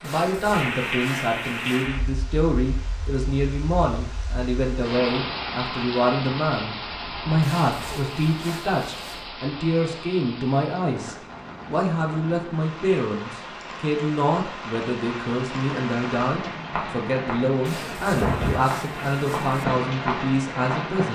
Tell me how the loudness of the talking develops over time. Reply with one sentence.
The loudness of the talking stays about the same.